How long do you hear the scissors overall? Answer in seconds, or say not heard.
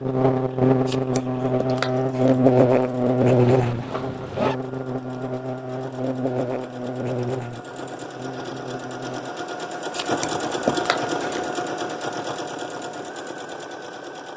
3 s.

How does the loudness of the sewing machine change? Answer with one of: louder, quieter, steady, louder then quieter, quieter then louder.
louder.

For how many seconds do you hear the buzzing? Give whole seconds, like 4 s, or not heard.
9 s.